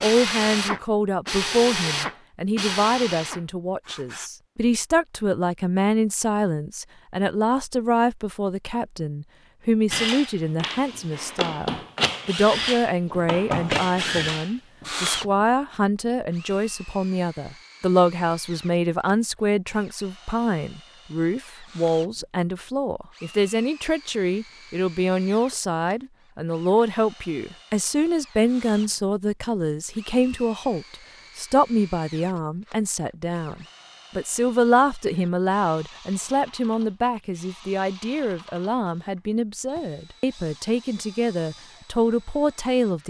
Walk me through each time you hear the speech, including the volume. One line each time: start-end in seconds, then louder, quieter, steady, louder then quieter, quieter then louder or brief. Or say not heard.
0.0-43.0 steady.